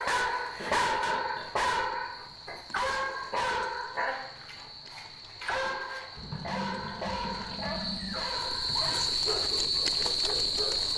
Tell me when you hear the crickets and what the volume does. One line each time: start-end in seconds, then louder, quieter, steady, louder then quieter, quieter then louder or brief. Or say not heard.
0.0-10.9 louder.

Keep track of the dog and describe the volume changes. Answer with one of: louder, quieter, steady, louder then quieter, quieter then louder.
quieter.